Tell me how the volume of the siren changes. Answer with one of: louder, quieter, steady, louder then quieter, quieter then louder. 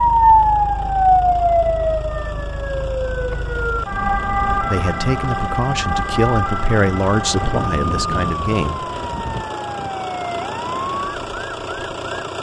quieter.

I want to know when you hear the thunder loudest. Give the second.
8 s.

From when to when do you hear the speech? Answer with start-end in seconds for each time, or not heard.
4.5-8.8.